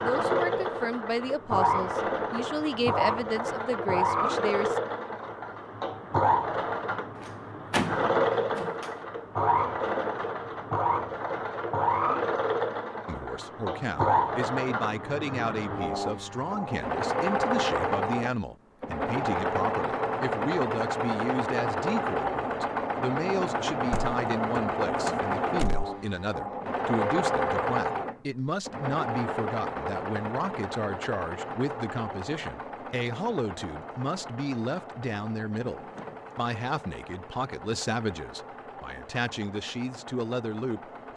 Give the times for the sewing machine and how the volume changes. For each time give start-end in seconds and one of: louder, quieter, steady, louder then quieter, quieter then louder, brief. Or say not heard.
0.0-41.1 quieter.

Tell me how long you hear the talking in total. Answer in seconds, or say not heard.
33 s.